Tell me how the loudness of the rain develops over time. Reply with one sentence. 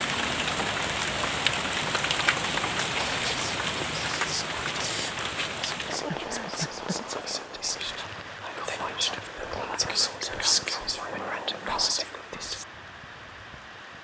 The loudness of the rain goes down.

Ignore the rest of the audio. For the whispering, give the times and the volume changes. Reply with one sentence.
You can hear the whispering from 3.0 to 12.7 s, getting louder.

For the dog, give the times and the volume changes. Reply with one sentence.
The dog can't be heard in this clip.